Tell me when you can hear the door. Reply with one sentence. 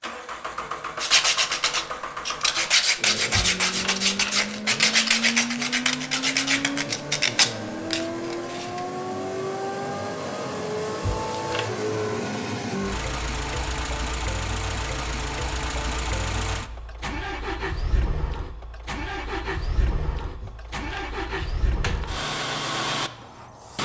The door can be heard from 3.3 to 4.3 s, from 11.0 to 11.7 s and from 20.4 to 22.1 s.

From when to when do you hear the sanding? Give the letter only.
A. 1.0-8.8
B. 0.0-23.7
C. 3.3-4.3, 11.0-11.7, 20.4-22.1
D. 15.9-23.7
A.